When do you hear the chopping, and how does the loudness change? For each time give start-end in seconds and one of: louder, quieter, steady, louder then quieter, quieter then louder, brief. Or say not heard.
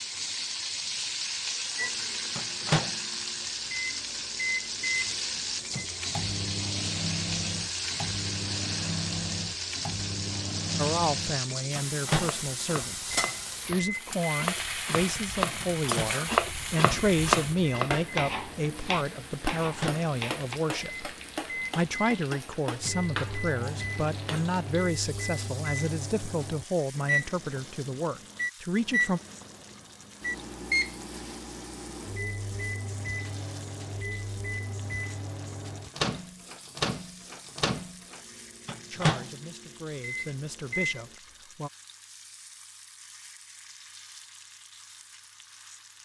12.2-20.6 louder then quieter.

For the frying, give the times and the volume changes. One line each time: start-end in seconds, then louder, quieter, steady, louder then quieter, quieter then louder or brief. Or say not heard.
0.0-45.9 quieter.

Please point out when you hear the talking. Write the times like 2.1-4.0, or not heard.
10.8-29.2, 38.9-41.7.